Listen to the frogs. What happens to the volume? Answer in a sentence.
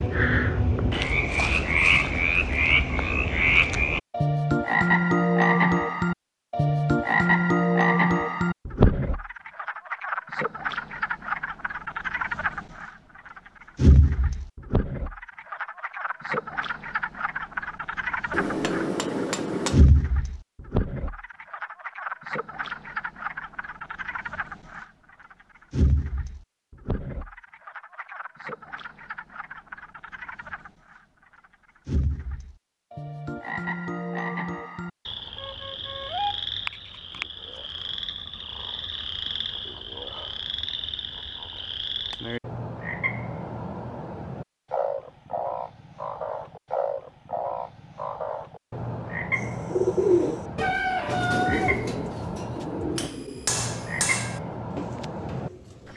The loudness of the frogs goes down.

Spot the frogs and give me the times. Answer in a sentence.
The frogs can be heard from 0.0 to 12.9 s, from 13.8 to 18.9 s, from 19.7 to 24.9 s, from 25.7 to 31.0 s and from 31.9 to 55.9 s.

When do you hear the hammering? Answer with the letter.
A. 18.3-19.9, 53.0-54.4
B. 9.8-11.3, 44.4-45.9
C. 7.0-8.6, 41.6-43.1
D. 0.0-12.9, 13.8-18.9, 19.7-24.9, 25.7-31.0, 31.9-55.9
A.